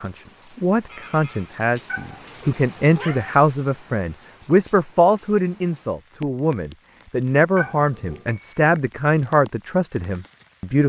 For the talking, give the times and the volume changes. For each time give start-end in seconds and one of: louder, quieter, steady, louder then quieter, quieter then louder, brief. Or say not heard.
0.0-10.8 steady.